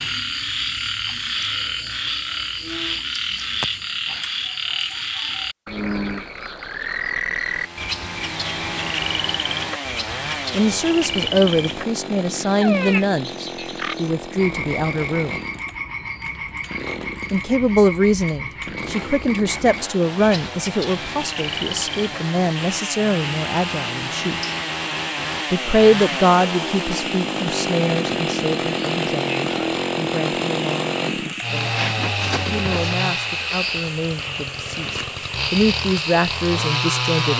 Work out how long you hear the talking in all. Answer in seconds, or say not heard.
23 s.